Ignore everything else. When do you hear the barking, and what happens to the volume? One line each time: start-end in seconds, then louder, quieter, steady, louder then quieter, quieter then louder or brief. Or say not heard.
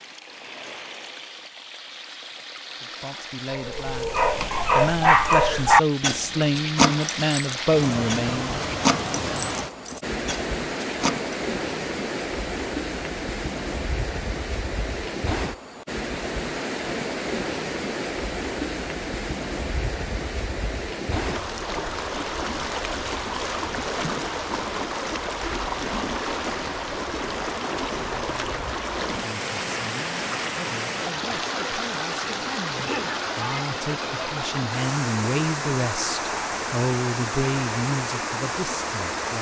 3.5-11.3 quieter.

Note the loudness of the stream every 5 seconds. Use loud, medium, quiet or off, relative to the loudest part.
medium, loud, loud, loud, loud, loud, loud, loud.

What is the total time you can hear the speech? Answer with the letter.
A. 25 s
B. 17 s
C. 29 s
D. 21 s
B.